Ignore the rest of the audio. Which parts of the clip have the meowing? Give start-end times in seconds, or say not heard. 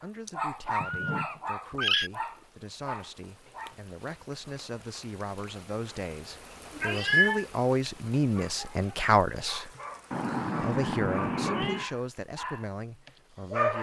0.2-2.1, 6.8-7.5, 10.1-11.8.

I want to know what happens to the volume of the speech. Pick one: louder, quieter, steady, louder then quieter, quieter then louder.
louder then quieter.